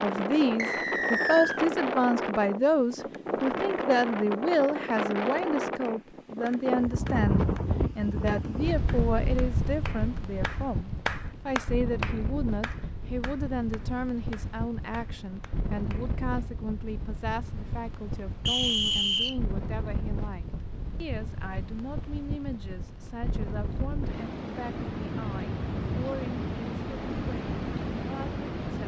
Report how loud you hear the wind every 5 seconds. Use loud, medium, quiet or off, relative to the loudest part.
loud, loud, medium, medium, medium, loud.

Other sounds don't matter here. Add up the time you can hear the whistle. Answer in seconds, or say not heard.
2 s.